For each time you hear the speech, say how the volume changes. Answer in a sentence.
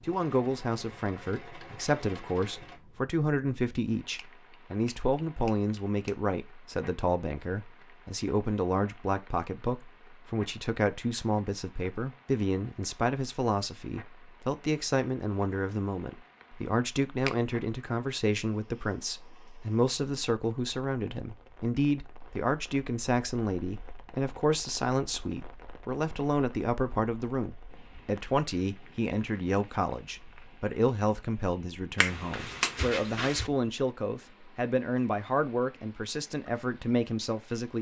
You can hear the speech from 0.1 to 37.7 s, at a steady volume.